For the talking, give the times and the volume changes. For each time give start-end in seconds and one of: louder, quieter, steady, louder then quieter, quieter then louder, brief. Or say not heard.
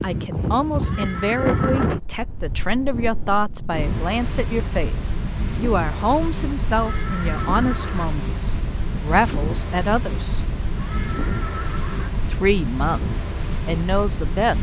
0.0-10.4 steady
12.3-14.5 brief.